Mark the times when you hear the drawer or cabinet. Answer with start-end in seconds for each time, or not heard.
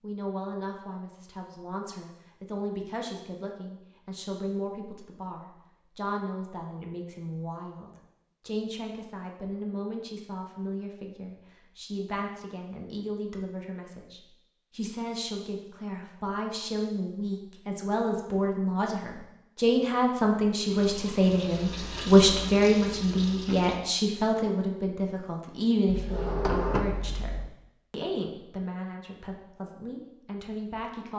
25.9-27.5.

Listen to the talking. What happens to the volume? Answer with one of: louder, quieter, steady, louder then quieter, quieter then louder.
louder then quieter.